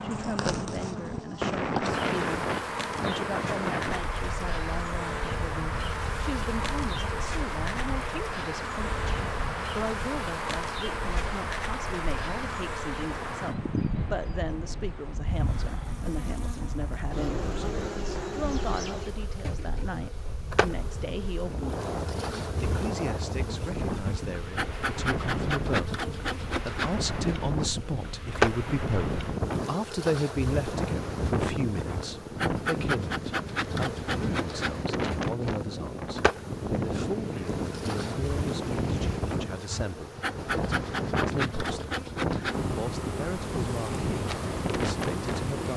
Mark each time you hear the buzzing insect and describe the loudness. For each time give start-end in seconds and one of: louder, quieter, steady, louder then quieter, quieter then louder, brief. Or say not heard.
0.0-45.7 steady.